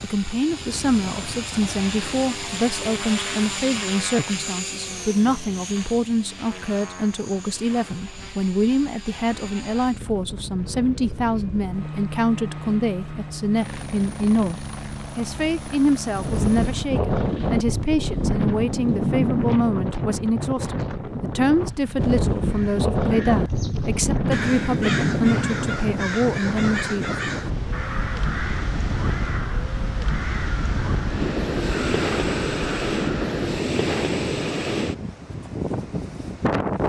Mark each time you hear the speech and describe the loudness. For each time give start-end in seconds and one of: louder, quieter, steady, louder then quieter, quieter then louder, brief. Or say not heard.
0.0-27.1 steady.